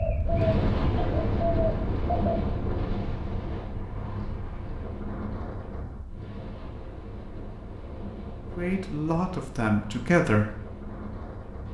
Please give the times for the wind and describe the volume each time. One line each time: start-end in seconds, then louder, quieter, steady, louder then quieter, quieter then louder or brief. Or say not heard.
0.0-11.6 quieter.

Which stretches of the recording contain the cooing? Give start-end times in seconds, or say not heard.
0.0-2.4.